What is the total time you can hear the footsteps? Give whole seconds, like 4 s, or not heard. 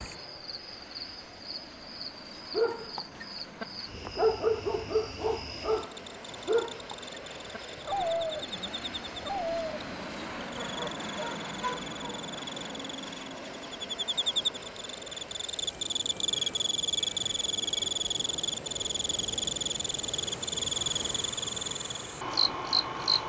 not heard.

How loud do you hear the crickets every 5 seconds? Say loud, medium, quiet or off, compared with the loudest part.
quiet, quiet, medium, loud, loud.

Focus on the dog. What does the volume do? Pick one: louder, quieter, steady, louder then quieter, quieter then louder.
quieter.